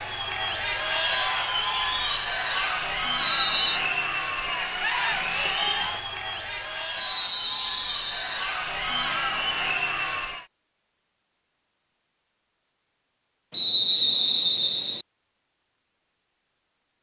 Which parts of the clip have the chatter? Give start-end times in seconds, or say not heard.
0.0-10.4.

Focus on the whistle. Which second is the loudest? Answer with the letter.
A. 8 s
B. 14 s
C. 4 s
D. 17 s
B.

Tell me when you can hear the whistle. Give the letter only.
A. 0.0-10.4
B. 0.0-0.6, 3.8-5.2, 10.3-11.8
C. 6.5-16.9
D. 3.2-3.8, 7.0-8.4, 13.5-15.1
D.